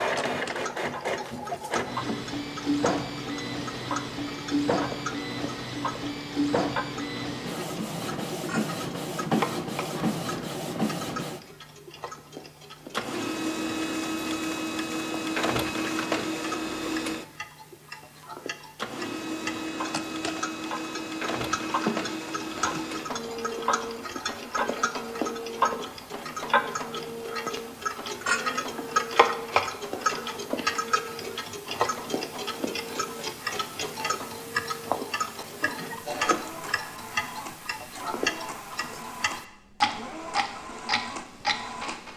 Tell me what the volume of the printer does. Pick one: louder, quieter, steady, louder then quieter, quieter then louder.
quieter.